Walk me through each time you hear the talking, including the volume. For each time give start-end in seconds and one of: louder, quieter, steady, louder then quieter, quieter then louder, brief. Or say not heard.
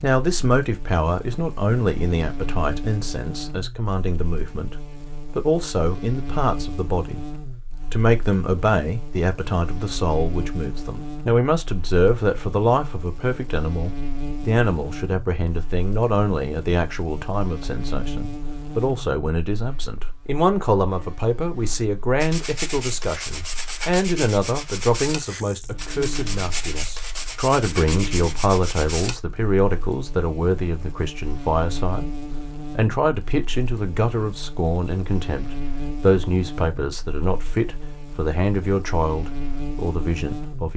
0.0-40.7 steady.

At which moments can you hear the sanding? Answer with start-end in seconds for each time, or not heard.
22.2-29.1.